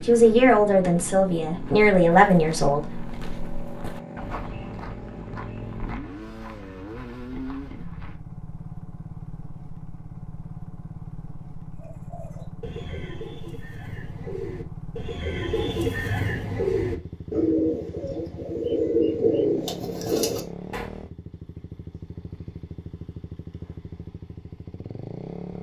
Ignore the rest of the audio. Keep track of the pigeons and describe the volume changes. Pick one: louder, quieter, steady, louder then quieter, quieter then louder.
louder.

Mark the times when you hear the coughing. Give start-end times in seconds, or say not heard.
not heard.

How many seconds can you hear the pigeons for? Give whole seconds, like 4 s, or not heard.
9 s.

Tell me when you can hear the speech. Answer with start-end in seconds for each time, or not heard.
0.1-3.0.